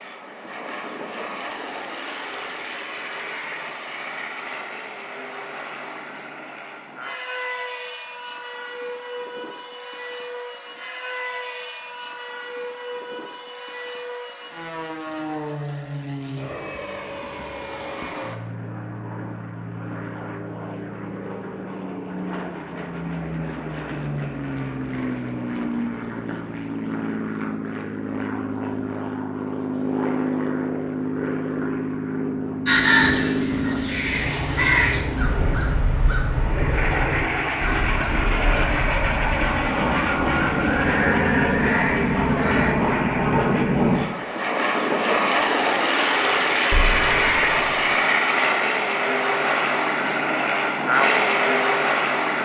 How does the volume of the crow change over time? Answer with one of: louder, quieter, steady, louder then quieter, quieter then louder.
quieter then louder.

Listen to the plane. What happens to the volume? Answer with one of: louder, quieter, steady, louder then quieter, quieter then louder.
louder.